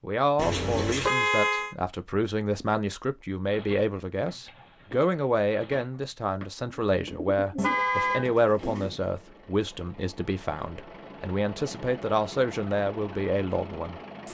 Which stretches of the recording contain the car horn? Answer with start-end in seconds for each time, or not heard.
0.3-1.8, 7.5-8.3.